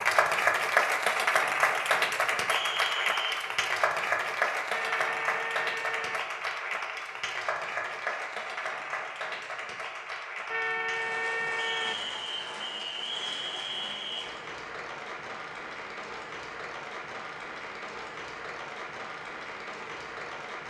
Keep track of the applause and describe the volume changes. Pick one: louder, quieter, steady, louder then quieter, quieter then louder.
quieter.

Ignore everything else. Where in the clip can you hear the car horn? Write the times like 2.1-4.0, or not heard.
4.7-6.2, 10.4-11.9.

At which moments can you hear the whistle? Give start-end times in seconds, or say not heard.
2.5-3.3, 11.6-14.2.